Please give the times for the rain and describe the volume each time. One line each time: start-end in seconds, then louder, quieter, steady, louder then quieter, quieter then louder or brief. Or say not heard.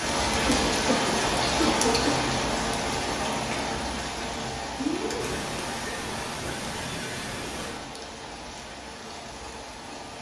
0.0-10.1 quieter.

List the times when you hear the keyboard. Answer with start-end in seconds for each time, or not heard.
not heard.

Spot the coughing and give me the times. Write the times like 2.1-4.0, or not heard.
0.5-2.3, 5.2-7.8.